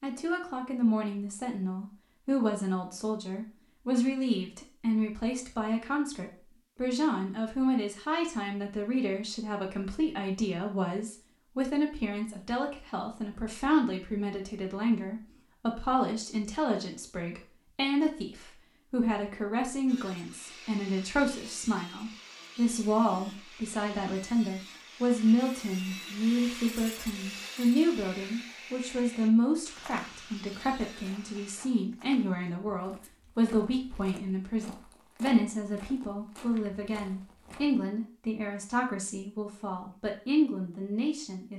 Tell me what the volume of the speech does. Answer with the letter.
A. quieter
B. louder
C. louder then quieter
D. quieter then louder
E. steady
E.